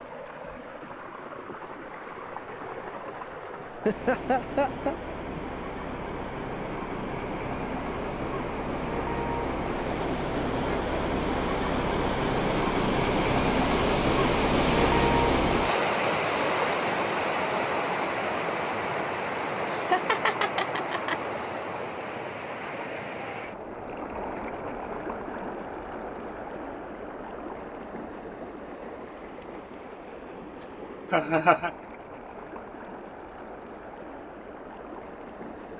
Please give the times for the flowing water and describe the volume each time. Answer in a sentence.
The flowing water can be heard from 0.0 to 35.7 s, getting louder then quieter.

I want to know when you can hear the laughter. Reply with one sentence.
You can hear the laughter from 3.9 to 5.4 s, from 19.4 to 21.1 s and from 30.6 to 31.7 s.